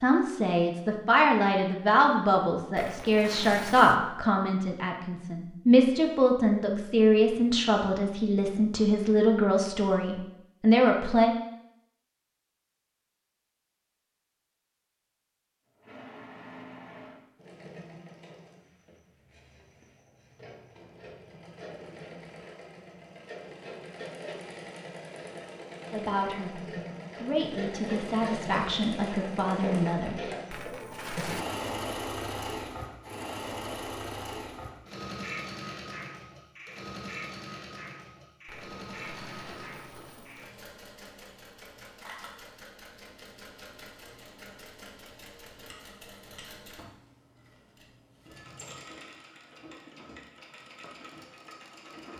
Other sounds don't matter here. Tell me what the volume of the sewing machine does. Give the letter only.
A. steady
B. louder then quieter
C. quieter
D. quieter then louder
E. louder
B.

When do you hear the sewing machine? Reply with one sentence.
The sewing machine can be heard from 15.8 to 52.1 s.